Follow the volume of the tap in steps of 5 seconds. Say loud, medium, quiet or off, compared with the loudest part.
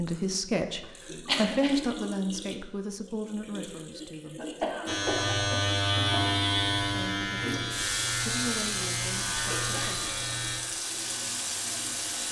medium, loud, loud.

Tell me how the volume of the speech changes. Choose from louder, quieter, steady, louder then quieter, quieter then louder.
quieter.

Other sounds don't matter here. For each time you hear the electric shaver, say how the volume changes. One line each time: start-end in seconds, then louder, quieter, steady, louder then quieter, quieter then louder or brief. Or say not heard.
4.8-12.2 quieter.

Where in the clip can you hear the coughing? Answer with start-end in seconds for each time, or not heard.
0.8-1.9, 4.3-6.2, 9.3-10.1.